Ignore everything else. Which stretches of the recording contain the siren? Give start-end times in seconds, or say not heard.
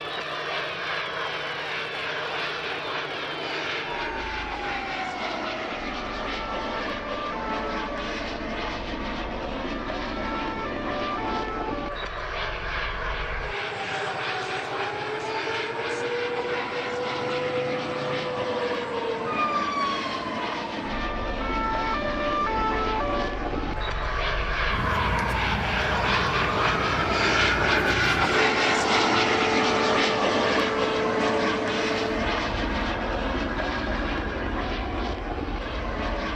0.0-36.3.